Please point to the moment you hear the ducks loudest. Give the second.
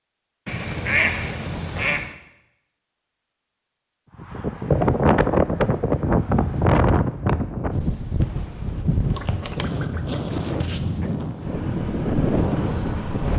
1 s.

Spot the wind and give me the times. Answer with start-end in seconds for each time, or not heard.
4.2-13.3.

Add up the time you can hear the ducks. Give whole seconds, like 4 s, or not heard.
4 s.